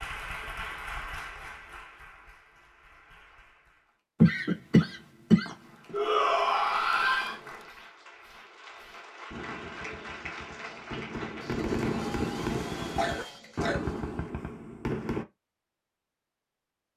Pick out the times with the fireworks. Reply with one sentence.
You can hear the fireworks from 7.7 to 15.2 s.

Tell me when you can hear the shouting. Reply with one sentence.
You can hear the shouting from 5.9 to 7.4 s.